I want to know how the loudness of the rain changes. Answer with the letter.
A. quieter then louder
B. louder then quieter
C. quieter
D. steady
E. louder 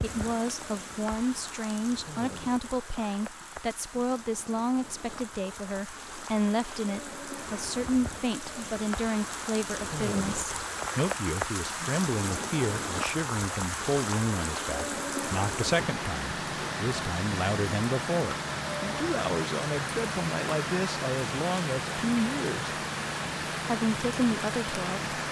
E.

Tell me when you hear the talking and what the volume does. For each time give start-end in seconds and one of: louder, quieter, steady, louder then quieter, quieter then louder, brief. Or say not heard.
0.0-22.7 steady
23.6-25.1 brief.